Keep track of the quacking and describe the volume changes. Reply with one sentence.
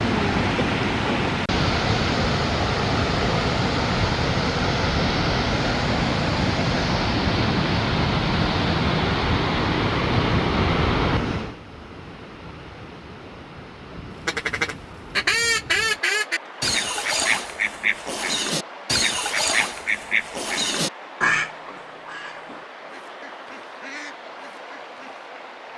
The loudness of the quacking goes down.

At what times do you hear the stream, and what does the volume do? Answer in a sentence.
The stream can be heard from 0.0 to 25.7 s, getting quieter.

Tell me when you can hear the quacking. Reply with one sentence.
You can hear the quacking from 14.2 to 25.2 s.